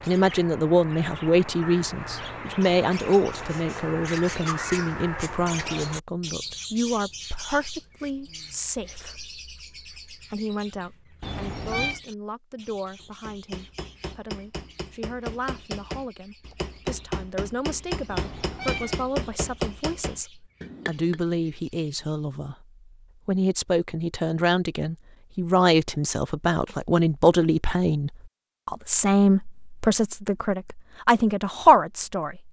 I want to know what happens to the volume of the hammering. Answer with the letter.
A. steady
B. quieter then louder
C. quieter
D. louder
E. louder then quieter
D.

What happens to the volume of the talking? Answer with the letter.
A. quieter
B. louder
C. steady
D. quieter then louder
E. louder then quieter
D.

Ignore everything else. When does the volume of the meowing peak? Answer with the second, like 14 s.
12 s.